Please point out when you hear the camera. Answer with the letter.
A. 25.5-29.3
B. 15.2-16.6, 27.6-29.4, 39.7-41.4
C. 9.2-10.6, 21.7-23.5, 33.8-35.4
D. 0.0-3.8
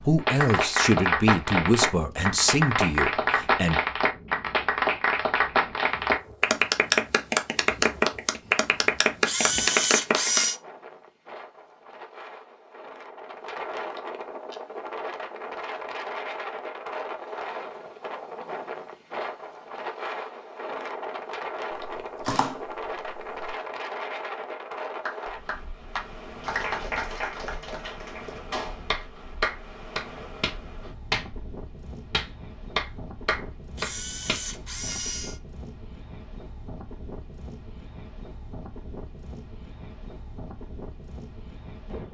C.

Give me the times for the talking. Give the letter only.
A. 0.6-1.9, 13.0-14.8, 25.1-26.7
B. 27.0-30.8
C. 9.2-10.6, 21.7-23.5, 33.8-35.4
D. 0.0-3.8
D.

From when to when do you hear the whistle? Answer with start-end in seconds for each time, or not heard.
not heard.